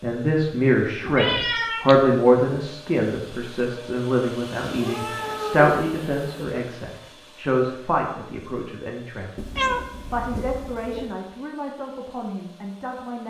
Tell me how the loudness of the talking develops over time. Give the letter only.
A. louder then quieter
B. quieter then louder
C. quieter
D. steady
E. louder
C.